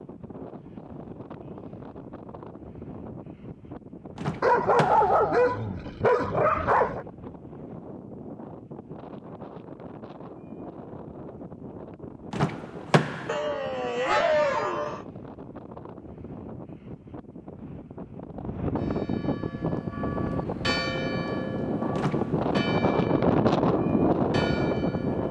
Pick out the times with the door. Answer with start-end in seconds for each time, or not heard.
4.2-5.2, 12.3-13.3, 21.9-22.5.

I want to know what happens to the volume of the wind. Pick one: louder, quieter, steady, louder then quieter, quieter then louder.
louder.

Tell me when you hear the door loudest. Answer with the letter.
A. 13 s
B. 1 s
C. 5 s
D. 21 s
A.